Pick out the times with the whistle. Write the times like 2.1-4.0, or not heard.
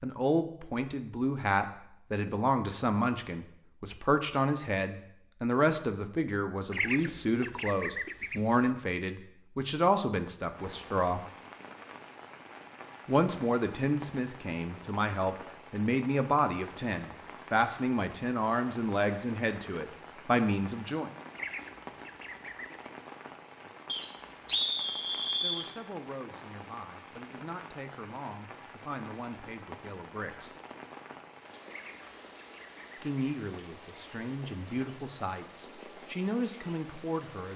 23.9-25.7.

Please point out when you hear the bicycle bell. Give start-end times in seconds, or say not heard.
not heard.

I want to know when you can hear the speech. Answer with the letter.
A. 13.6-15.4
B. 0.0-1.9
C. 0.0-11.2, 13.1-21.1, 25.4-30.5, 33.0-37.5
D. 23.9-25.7
C.